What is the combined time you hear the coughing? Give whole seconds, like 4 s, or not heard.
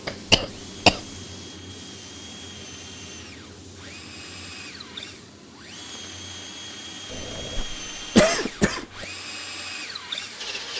3 s.